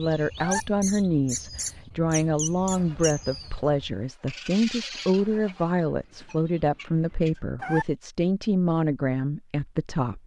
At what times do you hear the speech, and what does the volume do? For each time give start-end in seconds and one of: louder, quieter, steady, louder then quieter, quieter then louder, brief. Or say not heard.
0.0-10.2 steady.